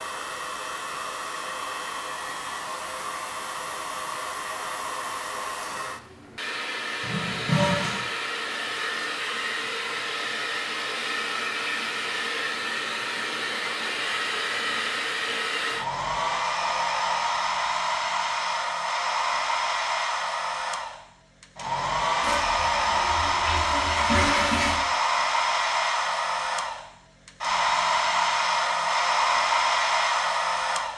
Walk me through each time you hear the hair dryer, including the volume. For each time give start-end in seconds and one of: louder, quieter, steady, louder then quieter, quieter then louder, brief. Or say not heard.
0.0-30.9 louder.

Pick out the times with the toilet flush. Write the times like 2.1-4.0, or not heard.
7.0-8.0, 22.2-24.8.